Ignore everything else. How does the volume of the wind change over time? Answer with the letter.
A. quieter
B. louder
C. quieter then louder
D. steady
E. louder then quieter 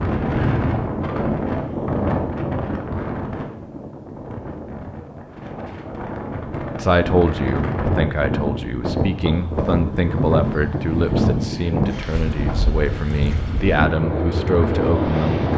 C.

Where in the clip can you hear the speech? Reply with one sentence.
The speech can be heard from 6.8 to 15.4 s.